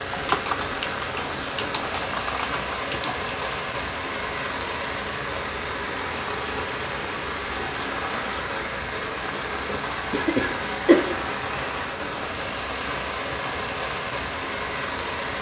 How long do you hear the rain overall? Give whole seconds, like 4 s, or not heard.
15 s.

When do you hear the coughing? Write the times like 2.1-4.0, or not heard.
9.7-11.1.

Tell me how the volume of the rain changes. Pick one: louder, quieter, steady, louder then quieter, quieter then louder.
steady.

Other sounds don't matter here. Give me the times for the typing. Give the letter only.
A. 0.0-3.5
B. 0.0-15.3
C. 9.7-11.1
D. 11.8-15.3
A.